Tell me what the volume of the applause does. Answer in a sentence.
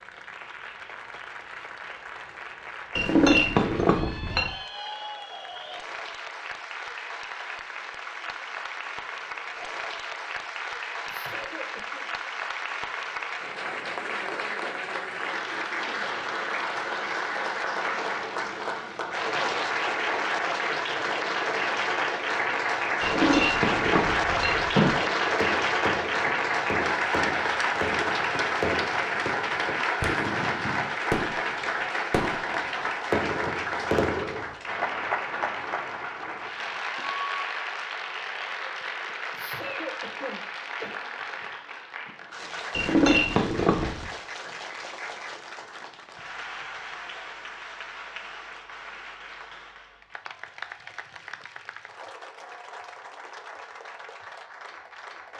The loudness of the applause goes up, then down.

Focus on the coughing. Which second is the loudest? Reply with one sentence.
The loudest moment of the coughing is at 40 seconds.